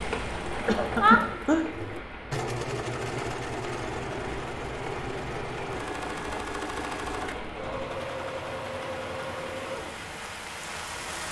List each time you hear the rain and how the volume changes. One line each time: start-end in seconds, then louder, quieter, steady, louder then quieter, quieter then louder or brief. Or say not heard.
0.0-11.2 steady.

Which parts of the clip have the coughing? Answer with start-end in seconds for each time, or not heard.
0.7-1.6.